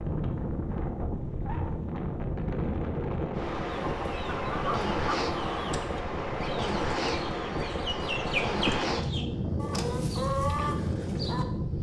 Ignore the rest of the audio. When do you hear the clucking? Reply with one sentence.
You can hear the clucking from 3.6 to 11.4 s.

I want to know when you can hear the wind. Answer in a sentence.
You can hear the wind from 0.0 to 11.7 s.